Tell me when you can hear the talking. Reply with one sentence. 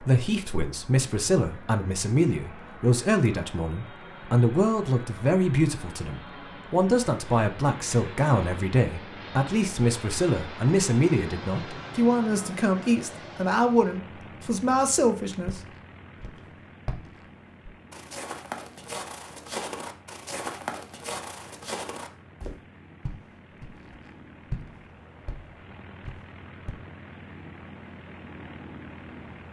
The talking can be heard from 0.0 to 15.6 s.